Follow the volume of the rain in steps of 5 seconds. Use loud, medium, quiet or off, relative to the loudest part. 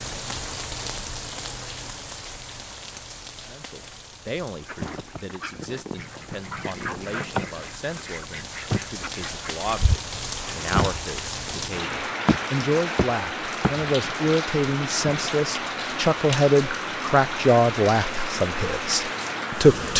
medium, medium, loud, loud.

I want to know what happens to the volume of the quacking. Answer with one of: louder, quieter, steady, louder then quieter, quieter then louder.
louder.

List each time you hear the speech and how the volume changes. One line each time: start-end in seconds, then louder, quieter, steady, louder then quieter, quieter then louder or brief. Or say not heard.
3.5-19.9 louder.